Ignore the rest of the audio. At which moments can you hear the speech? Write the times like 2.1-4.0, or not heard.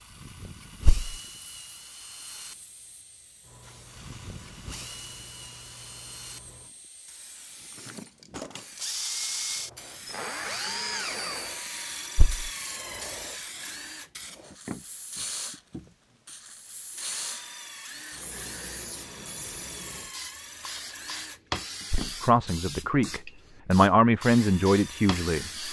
22.2-25.6.